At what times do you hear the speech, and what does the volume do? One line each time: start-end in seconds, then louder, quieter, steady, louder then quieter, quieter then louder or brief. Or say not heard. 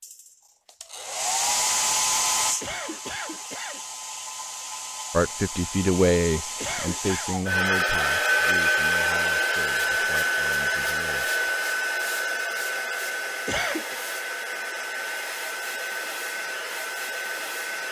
5.1-11.3 quieter.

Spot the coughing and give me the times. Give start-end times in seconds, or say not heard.
2.4-3.8, 6.4-7.3, 13.2-13.9.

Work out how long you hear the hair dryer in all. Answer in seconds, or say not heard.
18 s.